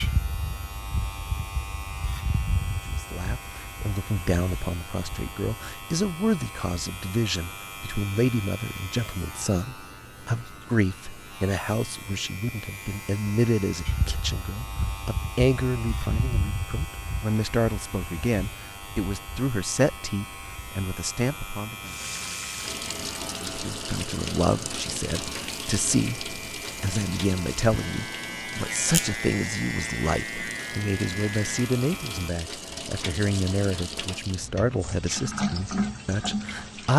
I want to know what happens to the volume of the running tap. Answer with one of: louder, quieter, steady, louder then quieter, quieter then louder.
quieter then louder.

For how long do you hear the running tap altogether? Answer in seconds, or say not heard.
15 s.